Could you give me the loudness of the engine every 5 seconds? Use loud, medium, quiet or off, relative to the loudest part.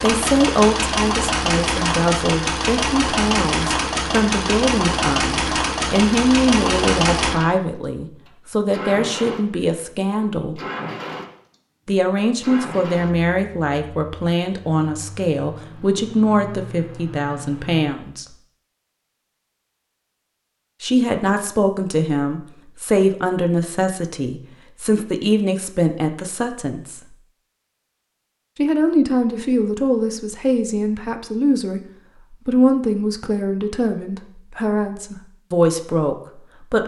loud, loud, medium, quiet, off, off, off, off.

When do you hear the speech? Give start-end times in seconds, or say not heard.
0.0-10.6, 11.8-18.2, 20.8-27.0, 28.6-36.8.